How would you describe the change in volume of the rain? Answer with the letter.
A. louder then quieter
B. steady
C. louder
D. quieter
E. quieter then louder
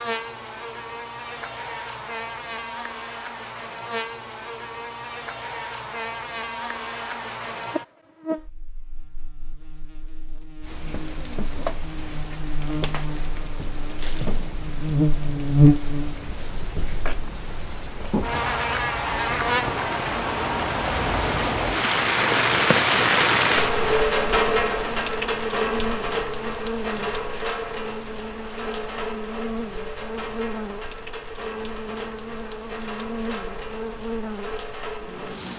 A.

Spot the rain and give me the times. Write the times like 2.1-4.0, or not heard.
10.6-35.5.